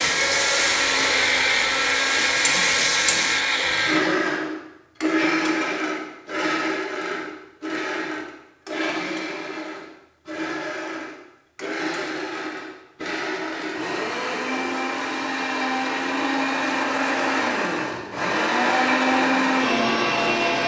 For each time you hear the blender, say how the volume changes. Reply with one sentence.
The blender can be heard from 0.0 to 20.6 s, getting quieter then louder.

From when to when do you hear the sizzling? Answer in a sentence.
You can hear the sizzling from 0.0 to 3.5 s.